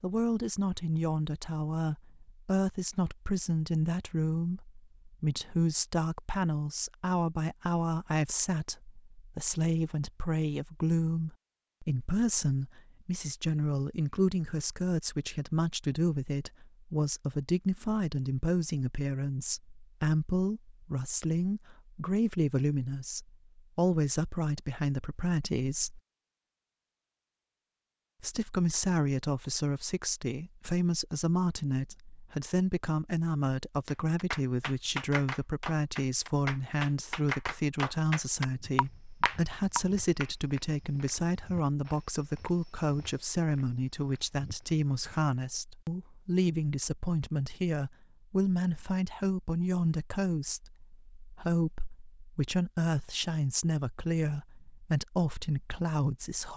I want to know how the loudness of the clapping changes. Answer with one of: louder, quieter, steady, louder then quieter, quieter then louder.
louder.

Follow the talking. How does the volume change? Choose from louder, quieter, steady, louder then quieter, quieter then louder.
steady.